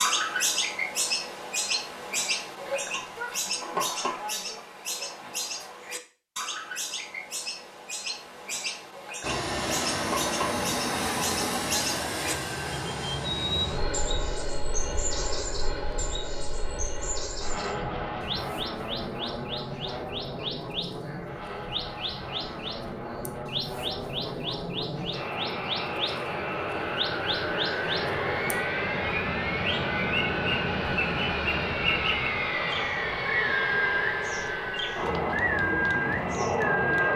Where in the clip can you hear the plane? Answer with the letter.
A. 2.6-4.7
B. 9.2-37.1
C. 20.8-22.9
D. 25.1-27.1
B.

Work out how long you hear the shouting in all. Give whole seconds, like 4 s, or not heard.
2 s.